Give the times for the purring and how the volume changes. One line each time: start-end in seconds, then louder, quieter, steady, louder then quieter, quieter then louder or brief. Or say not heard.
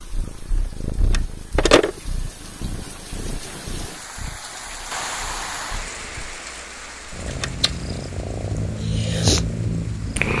0.0-10.3 quieter then louder.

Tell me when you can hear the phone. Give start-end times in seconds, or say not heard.
1.0-1.9, 7.2-7.7.